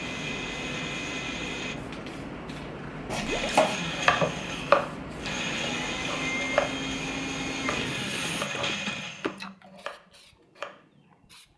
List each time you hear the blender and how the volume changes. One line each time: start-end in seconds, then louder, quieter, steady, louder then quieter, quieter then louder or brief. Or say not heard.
0.0-1.8 brief
3.2-9.4 steady.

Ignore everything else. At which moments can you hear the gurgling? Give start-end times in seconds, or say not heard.
3.1-3.6, 7.6-9.1.